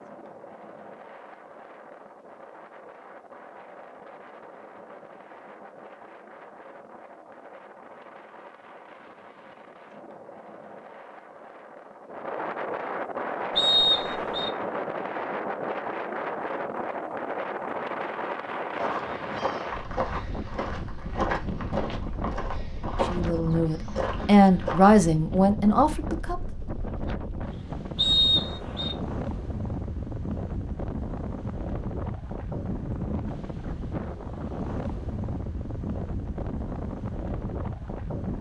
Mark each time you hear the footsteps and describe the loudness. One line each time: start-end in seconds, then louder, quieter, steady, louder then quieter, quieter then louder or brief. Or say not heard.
18.8-24.9 steady.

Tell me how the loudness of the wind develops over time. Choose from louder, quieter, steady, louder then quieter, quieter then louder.
louder.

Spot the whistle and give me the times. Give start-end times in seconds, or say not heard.
13.6-14.5, 27.9-28.9.